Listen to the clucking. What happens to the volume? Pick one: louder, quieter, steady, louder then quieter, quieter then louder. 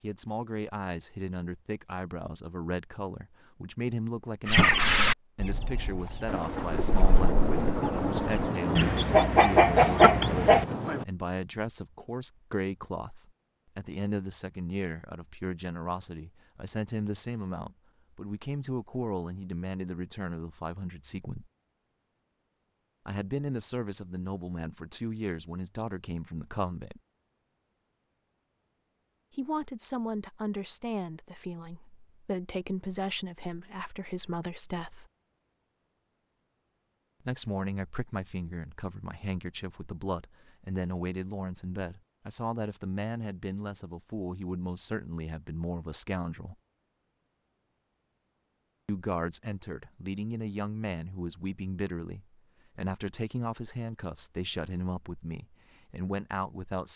quieter then louder.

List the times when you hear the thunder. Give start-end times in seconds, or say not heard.
6.2-11.1.